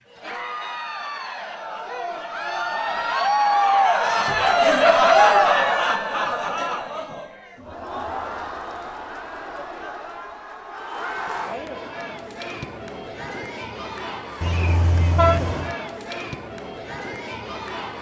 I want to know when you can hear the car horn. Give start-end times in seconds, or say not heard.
14.4-15.8.